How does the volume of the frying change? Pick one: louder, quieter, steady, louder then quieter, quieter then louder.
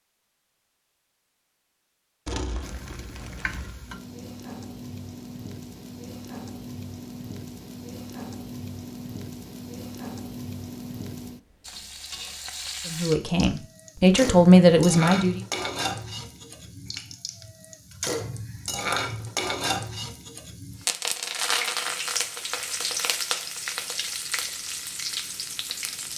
louder.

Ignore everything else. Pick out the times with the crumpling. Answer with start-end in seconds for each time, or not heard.
2.2-3.8.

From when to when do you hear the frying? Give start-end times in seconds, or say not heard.
2.6-26.1.